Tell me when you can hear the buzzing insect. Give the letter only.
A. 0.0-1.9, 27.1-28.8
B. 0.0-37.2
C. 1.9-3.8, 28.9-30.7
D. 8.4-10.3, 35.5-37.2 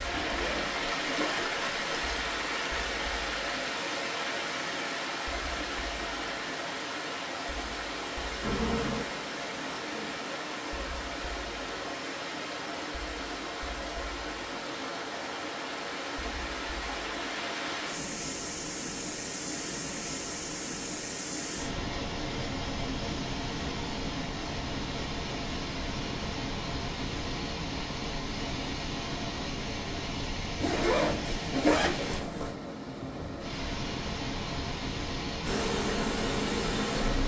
D.